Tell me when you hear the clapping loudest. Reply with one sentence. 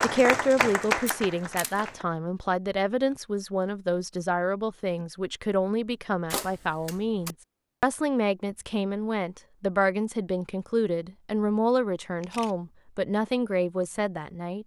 The loudest moment of the clapping is at 1 second.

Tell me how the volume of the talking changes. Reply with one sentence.
The loudness of the talking stays about the same.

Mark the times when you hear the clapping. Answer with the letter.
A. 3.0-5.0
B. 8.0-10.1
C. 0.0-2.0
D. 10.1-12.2
C.